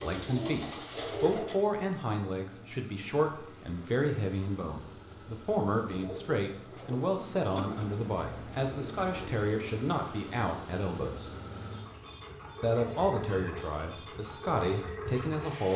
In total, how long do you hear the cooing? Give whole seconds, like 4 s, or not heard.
5 s.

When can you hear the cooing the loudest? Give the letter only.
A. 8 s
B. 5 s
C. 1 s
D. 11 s
C.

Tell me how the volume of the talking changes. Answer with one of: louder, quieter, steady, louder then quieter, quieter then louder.
steady.